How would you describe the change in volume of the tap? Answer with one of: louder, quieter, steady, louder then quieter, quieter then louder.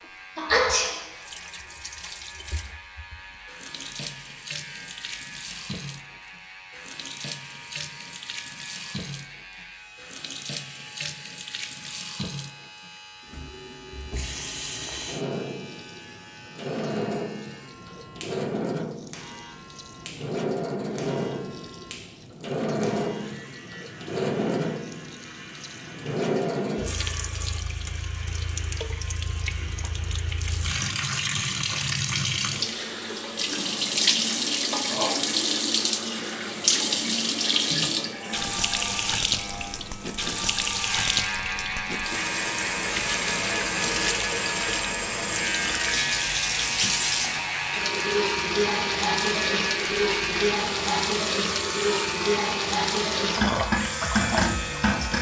louder.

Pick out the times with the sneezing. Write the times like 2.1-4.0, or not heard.
0.3-1.0.